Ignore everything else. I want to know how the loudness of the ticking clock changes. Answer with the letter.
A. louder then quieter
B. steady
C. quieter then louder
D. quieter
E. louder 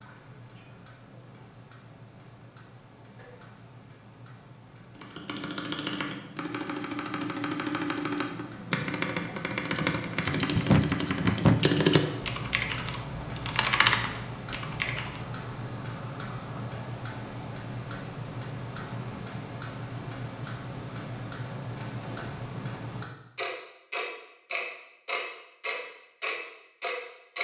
E.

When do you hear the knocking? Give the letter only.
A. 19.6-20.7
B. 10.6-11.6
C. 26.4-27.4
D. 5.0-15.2
B.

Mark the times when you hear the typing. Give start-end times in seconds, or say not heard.
5.0-15.2.